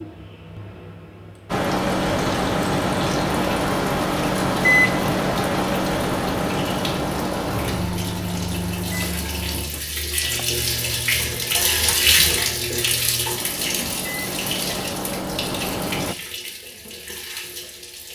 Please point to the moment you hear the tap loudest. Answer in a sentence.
The loudest moment of the tap is at 12 seconds.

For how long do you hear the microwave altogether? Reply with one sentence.
The microwave can be heard for 15 seconds in total.